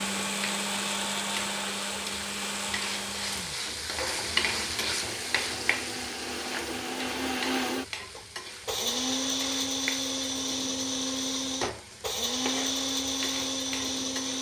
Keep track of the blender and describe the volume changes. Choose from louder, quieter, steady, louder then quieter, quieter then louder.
quieter then louder.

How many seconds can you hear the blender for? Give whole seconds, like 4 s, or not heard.
14 s.